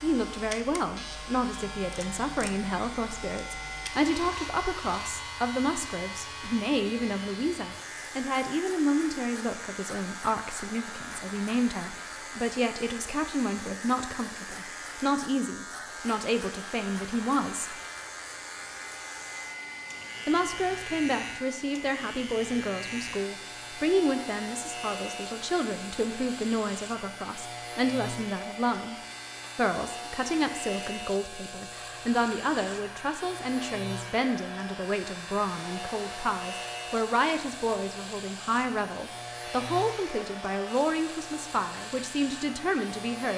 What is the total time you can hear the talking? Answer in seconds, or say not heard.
40 s.